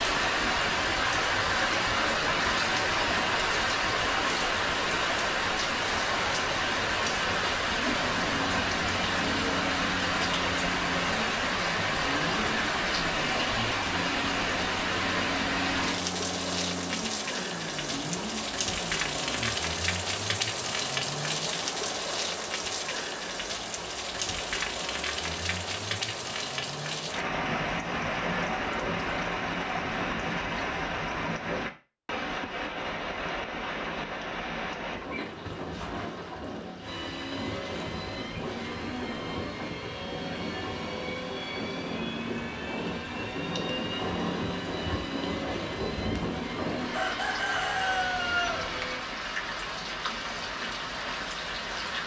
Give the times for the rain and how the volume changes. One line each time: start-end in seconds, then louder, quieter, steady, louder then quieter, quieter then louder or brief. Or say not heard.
0.0-52.0 quieter.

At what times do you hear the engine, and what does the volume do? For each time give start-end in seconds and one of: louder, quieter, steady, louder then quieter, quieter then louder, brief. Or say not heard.
8.1-19.6 steady
36.8-49.0 steady.